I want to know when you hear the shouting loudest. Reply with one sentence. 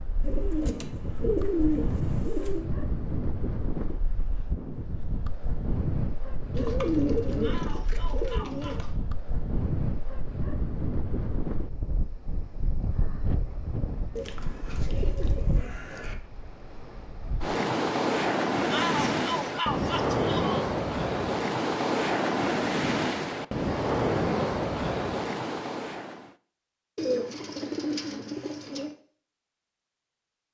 The volume of the shouting peaks at 19 seconds.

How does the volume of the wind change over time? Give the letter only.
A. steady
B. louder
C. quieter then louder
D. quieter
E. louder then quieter
B.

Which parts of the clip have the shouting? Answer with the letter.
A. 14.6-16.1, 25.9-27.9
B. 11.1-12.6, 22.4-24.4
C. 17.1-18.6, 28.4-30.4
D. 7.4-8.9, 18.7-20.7
D.